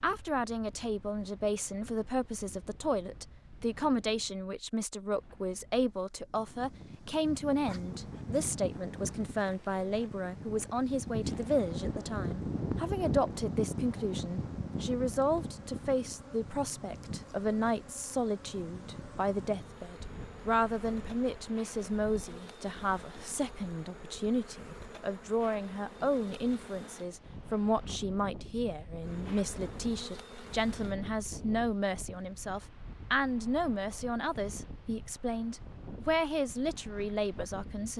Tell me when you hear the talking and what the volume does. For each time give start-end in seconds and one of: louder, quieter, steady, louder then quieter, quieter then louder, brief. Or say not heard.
0.0-37.9 steady.